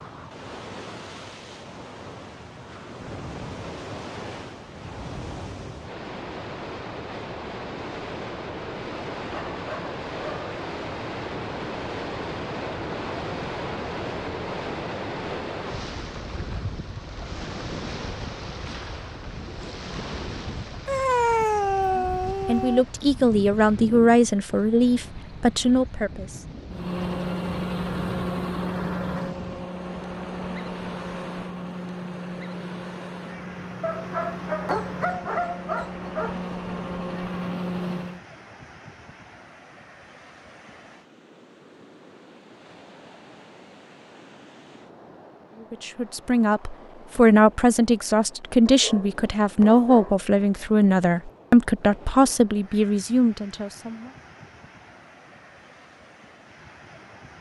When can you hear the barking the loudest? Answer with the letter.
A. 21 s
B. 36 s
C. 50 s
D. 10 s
A.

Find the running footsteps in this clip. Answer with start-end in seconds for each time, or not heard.
not heard.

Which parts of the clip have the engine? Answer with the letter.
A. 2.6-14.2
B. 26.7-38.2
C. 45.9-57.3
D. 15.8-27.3
B.